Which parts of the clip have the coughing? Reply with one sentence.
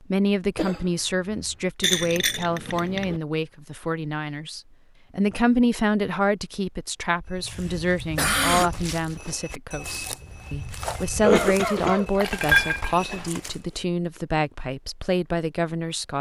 You can hear the coughing from 0.6 to 1.6 s, from 8.0 to 8.7 s and from 11.2 to 12.2 s.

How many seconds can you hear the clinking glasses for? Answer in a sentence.
The clinking glasses can be heard for 3 seconds in total.